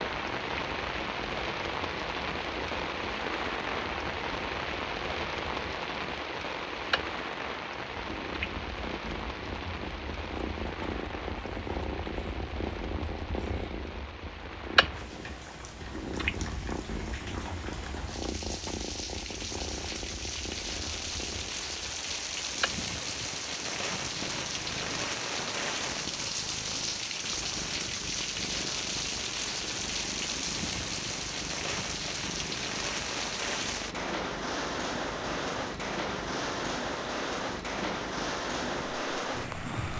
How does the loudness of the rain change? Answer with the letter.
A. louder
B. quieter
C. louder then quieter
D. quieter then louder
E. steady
D.